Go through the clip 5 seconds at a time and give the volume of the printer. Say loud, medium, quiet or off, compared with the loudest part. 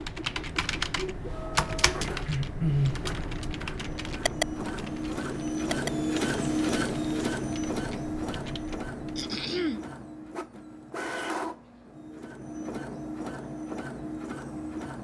medium, loud, medium.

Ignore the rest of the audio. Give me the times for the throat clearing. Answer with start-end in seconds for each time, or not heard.
2.0-3.0, 9.2-9.8.